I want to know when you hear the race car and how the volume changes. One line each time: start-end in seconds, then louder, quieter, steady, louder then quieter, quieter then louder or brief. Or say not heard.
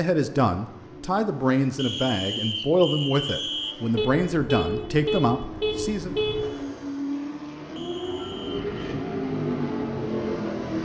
0.1-10.8 louder.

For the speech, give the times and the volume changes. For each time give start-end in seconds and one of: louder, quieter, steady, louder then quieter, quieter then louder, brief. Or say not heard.
0.0-6.2 steady.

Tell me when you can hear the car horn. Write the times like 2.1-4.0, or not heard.
3.9-6.5.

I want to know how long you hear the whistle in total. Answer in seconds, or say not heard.
3 s.